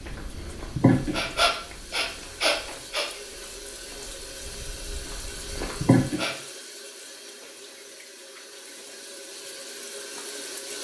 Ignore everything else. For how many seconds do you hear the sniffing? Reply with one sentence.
You can hear the sniffing for 3 seconds altogether.